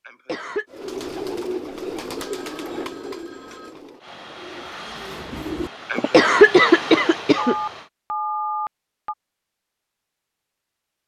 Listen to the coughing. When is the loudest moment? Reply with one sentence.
The volume of the coughing peaks at 7 seconds.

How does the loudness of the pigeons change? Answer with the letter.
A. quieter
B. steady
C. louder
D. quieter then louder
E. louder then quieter
D.